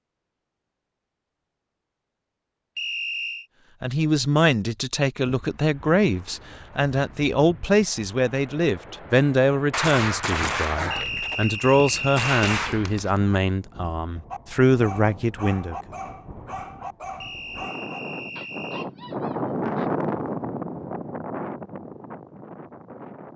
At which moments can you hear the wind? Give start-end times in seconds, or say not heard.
5.2-23.3.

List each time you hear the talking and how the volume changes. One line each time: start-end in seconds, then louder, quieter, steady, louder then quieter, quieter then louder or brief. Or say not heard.
3.8-15.8 steady.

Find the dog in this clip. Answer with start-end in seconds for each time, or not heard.
14.3-19.9.